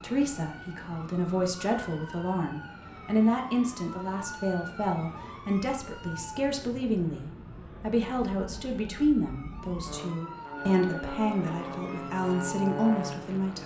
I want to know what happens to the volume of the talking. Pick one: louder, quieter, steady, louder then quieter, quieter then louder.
steady.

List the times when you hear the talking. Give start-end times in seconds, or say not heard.
0.0-13.6.